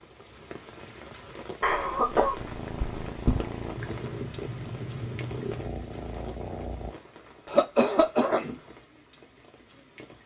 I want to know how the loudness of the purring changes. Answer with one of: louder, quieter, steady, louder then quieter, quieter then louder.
steady.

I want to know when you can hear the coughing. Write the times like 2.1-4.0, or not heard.
1.6-3.5, 7.5-8.6.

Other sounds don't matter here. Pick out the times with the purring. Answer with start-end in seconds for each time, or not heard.
2.4-7.0.